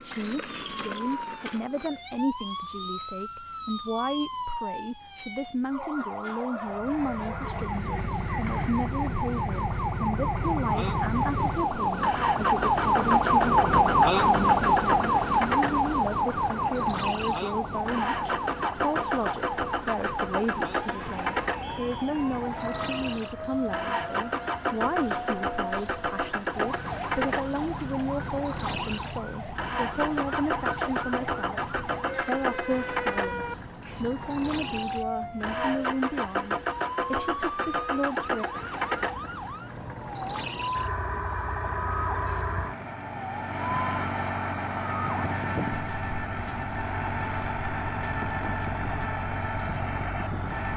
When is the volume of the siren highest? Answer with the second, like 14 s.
14 s.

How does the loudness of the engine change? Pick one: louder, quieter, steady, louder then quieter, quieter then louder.
steady.